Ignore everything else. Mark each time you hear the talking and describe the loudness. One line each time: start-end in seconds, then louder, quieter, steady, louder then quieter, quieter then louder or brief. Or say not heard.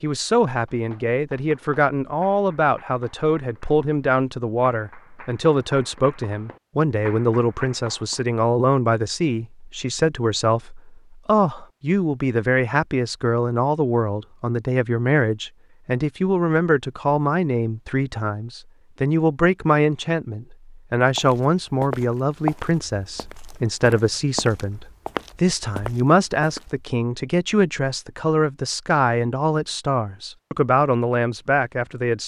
0.0-32.2 steady.